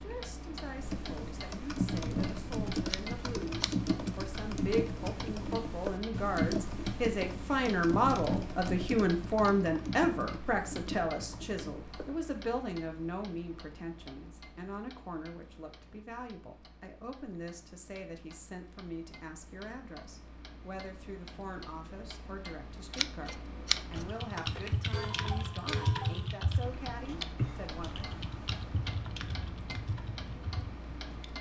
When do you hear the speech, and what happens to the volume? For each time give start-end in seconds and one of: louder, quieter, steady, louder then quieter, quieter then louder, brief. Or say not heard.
0.0-27.9 louder then quieter.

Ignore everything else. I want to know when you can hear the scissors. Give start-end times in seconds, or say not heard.
2.9-3.9, 22.9-24.1.